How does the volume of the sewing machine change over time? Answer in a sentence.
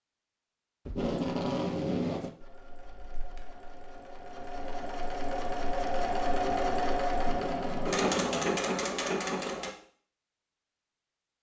The loudness of the sewing machine goes up.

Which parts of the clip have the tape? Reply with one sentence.
You can hear the tape from 0.8 to 2.4 s and from 7.1 to 8.6 s.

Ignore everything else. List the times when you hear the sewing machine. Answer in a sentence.
You can hear the sewing machine from 2.4 to 9.8 s.